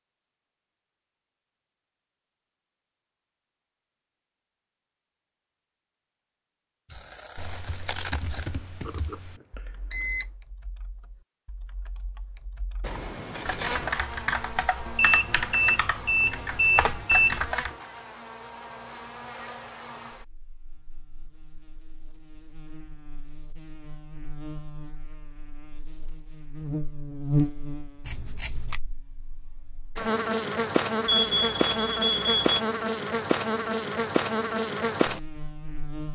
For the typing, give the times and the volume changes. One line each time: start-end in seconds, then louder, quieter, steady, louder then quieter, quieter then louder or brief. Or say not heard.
6.9-17.8 quieter then louder.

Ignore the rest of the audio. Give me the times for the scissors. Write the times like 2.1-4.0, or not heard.
6.9-8.5, 12.8-13.9, 28.0-28.8.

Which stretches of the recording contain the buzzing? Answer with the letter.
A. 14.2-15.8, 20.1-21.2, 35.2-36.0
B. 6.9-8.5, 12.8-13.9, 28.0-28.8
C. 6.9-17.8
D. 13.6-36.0
D.